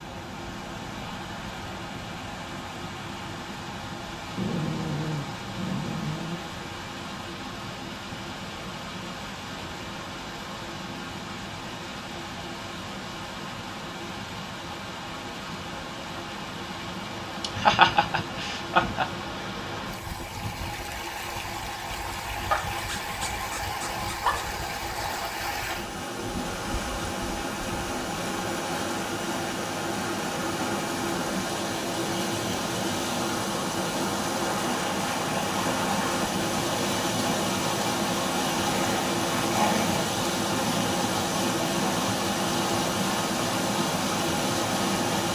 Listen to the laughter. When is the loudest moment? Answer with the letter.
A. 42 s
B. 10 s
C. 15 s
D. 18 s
D.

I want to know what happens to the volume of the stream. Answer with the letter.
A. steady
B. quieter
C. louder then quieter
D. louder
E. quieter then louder
D.